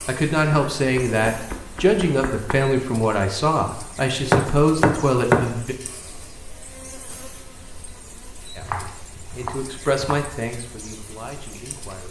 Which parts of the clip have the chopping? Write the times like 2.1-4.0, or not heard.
0.5-2.5, 4.2-5.5, 8.6-10.2.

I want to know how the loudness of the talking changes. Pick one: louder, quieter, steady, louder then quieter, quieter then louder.
quieter.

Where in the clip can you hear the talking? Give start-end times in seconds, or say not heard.
0.1-5.8, 8.6-12.0.